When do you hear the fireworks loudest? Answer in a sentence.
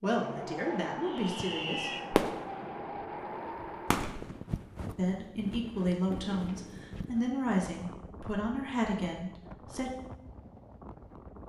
The loudest moment of the fireworks is at 2 seconds.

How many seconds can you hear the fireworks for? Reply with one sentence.
You can hear the fireworks for 5 seconds altogether.